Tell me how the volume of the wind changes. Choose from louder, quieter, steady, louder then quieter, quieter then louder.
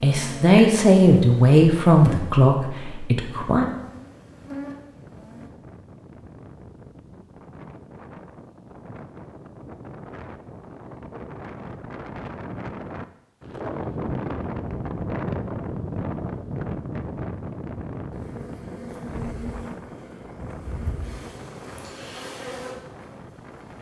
louder then quieter.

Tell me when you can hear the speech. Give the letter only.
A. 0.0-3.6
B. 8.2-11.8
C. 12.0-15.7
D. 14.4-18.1
A.